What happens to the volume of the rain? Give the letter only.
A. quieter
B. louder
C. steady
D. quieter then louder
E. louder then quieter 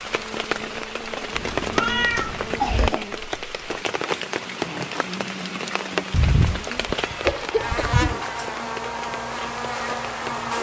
A.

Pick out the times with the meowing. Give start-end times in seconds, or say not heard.
1.3-2.9, 6.1-8.2.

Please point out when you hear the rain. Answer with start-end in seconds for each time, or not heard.
0.0-10.5.